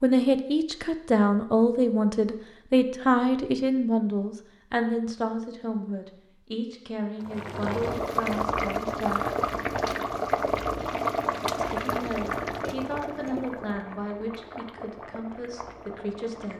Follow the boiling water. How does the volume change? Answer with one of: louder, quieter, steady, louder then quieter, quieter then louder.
quieter.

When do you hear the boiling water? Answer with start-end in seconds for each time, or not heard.
7.2-16.5.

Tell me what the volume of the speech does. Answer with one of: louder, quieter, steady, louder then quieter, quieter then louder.
quieter.